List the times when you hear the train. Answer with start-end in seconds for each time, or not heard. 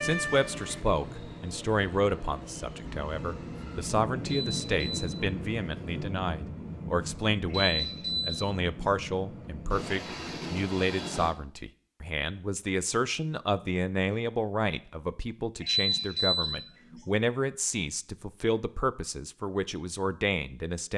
0.0-11.3.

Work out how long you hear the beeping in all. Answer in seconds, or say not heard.
3 s.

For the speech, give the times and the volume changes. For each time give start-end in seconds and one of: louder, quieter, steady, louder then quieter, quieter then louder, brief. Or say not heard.
0.0-20.9 steady.